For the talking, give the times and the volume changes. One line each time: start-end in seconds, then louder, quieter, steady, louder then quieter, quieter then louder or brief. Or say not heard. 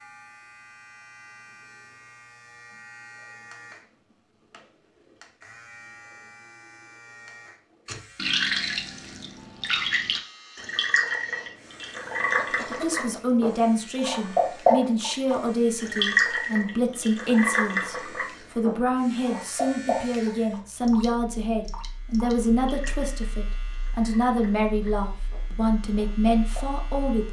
12.7-27.2 steady.